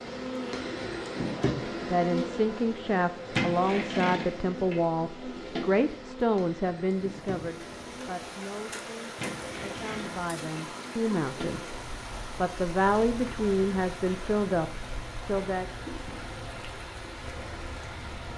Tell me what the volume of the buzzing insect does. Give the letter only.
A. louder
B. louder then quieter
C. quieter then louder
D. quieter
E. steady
D.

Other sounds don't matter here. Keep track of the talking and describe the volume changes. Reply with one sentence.
The volume of the talking goes down, then up.